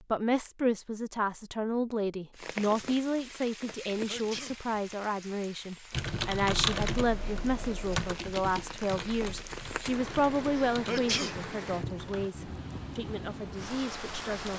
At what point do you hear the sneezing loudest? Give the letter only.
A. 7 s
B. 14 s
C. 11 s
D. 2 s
C.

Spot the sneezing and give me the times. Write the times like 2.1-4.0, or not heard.
3.9-4.5, 10.6-11.3.